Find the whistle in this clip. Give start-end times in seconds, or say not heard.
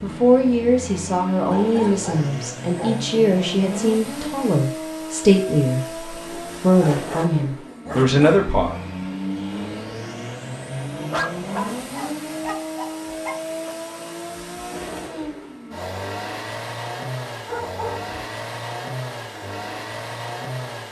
not heard.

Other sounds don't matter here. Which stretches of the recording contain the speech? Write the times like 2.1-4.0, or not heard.
0.0-8.8.